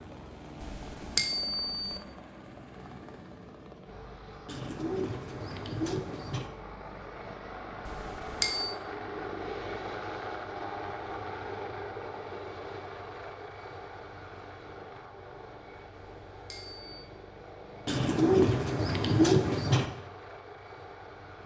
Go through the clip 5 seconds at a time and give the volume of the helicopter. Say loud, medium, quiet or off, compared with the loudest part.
medium, loud, loud, medium, medium.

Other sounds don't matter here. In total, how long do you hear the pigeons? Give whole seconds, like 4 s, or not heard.
4 s.